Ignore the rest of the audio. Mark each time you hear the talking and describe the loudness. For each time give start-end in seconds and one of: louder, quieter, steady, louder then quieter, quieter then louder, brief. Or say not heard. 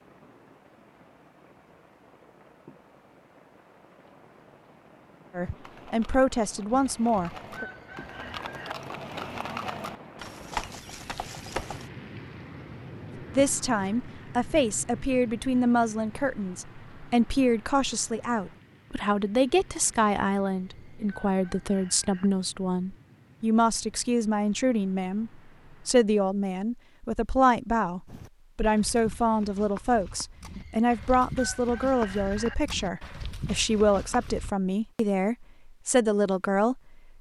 5.3-7.7 brief
13.2-37.0 steady.